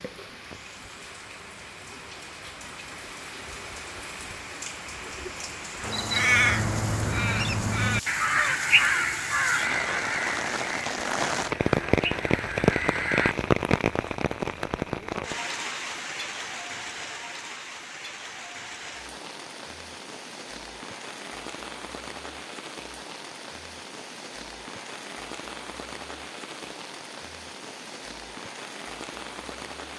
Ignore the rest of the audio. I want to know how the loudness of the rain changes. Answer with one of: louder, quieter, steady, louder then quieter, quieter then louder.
louder then quieter.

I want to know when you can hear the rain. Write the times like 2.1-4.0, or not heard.
0.0-29.9.